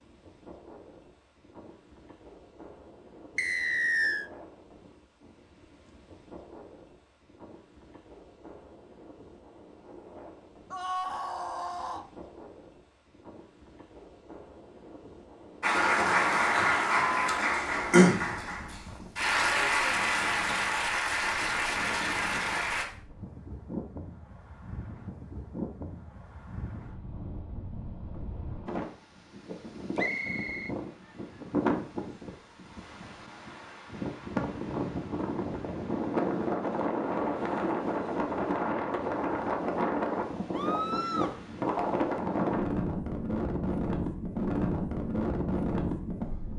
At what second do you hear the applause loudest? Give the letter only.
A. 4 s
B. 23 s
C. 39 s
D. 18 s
D.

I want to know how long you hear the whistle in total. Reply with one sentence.
The whistle can be heard for 2 seconds in total.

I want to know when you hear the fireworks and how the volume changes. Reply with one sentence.
You can't hear the fireworks here.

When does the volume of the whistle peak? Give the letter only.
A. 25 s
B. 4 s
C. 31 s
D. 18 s
B.